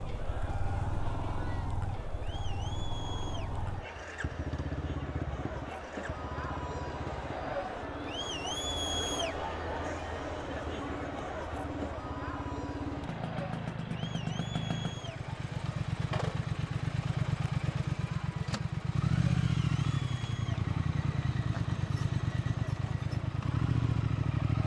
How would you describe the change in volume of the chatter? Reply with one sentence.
The volume of the chatter goes up, then down.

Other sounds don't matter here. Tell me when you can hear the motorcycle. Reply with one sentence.
You can hear the motorcycle from 0.0 to 24.6 s.